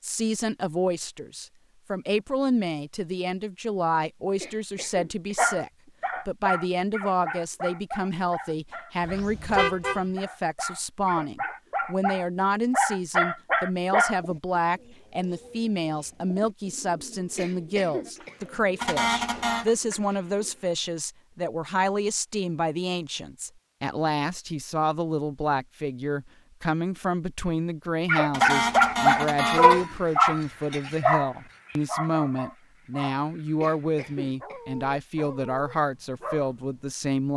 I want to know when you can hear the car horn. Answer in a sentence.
You can hear the car horn from 9.0 to 10.1 s, from 18.8 to 19.7 s and from 28.3 to 29.9 s.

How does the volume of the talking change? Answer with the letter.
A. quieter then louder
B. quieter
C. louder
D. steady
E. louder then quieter
D.